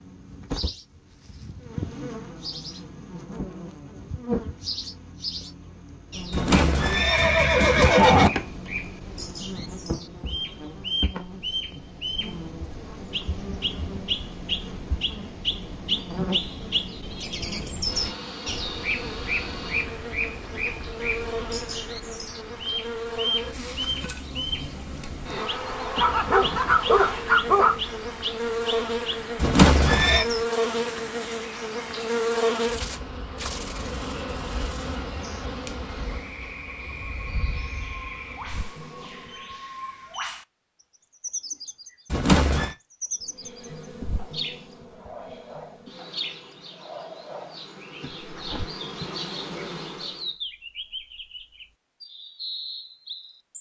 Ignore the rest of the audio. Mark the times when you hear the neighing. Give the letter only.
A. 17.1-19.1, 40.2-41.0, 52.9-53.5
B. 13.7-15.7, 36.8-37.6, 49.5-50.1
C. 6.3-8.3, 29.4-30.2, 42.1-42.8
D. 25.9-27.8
C.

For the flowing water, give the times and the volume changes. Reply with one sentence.
The flowing water can't be heard in this clip.